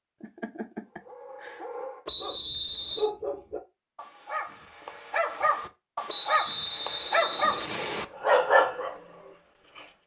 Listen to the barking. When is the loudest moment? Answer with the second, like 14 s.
8 s.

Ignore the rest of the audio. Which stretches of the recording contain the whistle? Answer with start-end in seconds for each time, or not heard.
2.0-3.1, 6.0-8.1.